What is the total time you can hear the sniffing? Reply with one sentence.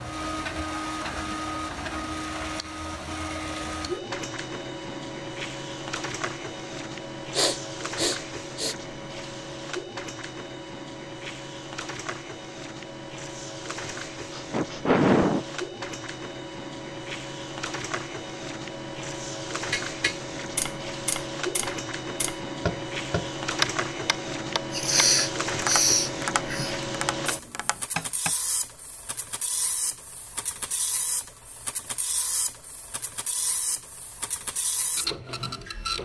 You can hear the sniffing for 5 seconds altogether.